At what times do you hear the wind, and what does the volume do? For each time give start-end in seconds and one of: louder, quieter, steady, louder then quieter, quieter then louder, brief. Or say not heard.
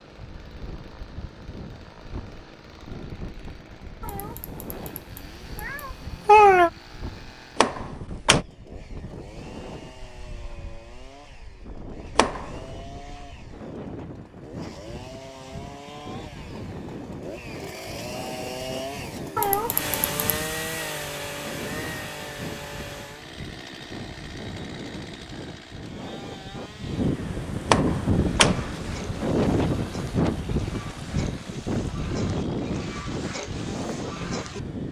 0.0-34.8 louder.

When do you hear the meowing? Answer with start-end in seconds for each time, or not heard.
4.0-5.0, 5.6-6.7, 19.4-20.4.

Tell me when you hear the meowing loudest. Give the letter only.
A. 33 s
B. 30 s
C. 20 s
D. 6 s
D.